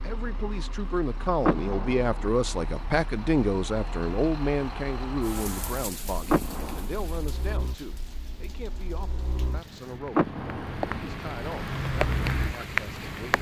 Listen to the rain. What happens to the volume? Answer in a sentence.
The loudness of the rain goes down, then up.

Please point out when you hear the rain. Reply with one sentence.
You can hear the rain from 5.2 to 13.3 s.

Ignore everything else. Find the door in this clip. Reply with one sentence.
The door can be heard from 1.4 to 2.3 s, from 6.2 to 6.8 s and from 10.2 to 11.0 s.